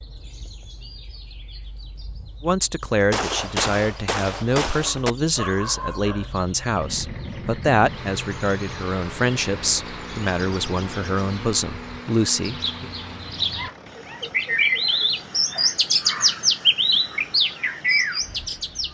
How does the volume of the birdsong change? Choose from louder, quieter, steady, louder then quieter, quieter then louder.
louder.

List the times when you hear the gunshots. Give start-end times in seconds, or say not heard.
3.1-5.2.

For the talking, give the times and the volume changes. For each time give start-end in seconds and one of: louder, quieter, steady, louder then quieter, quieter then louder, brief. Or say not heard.
2.4-12.9 steady.